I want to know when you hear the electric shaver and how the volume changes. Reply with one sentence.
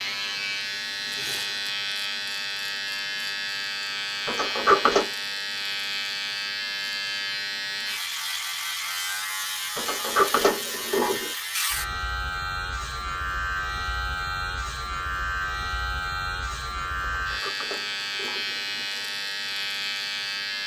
You can hear the electric shaver from 0.0 to 20.6 s, at a steady volume.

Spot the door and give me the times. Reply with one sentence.
The door can be heard from 4.2 to 5.0 s, from 9.8 to 11.3 s and from 17.2 to 18.9 s.